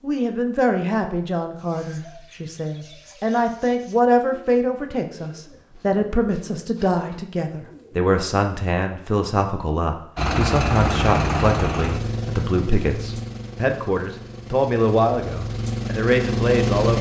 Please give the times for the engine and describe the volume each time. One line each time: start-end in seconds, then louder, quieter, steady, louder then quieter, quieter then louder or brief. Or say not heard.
10.2-16.9 quieter then louder.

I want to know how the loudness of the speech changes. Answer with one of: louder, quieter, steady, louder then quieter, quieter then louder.
steady.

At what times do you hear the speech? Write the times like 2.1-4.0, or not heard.
0.0-16.9.